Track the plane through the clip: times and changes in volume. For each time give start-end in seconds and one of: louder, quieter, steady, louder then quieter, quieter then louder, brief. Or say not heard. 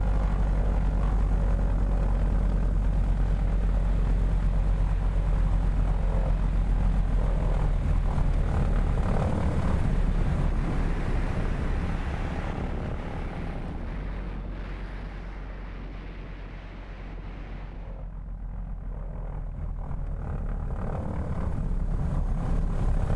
0.0-23.1 quieter then louder.